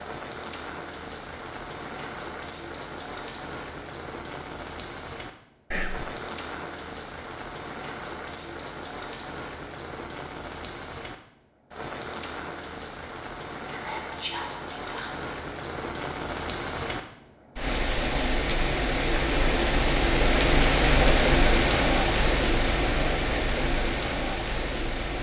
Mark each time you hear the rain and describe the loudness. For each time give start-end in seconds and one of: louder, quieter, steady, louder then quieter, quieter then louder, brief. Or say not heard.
0.0-25.1 louder.